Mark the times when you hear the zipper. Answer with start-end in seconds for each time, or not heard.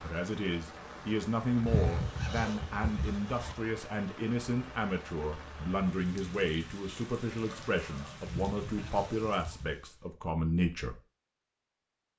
1.6-3.5, 8.2-9.8.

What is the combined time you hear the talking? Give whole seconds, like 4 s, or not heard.
11 s.